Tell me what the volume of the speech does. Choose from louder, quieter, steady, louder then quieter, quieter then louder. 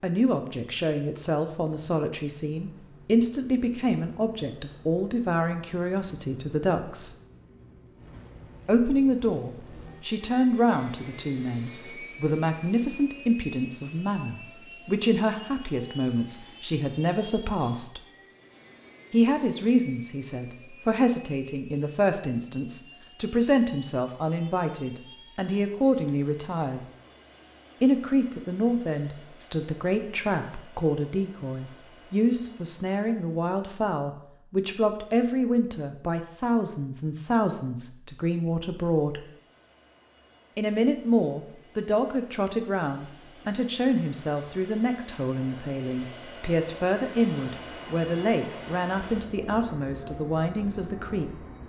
steady.